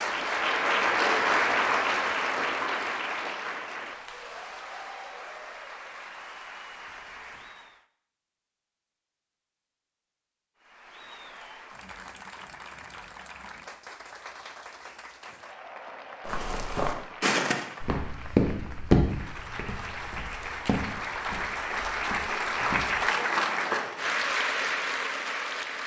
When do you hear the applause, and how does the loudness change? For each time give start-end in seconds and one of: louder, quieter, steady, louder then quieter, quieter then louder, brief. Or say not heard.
0.0-7.8 quieter
10.6-25.8 louder.